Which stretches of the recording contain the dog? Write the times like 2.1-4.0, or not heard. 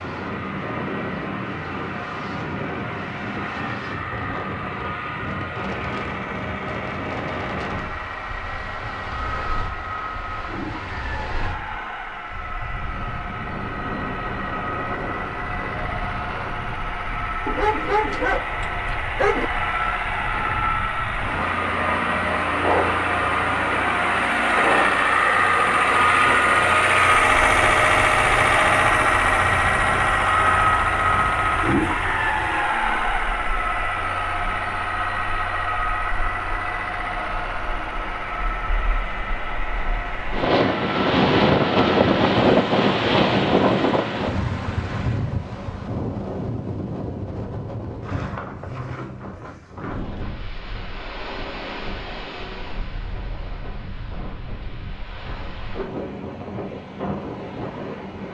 17.4-19.5.